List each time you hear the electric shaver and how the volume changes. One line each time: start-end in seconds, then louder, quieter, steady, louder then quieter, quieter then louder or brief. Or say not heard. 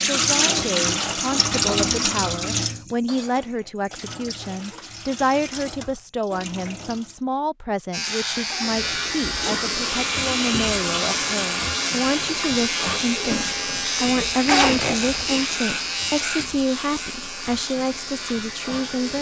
7.9-19.1 quieter.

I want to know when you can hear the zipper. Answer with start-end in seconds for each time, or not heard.
3.2-4.9, 8.4-9.1, 14.4-15.4.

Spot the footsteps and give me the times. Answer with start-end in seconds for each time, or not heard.
not heard.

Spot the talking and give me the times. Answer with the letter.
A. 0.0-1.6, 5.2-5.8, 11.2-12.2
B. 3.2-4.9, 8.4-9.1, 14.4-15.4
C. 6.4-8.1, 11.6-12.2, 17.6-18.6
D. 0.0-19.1
D.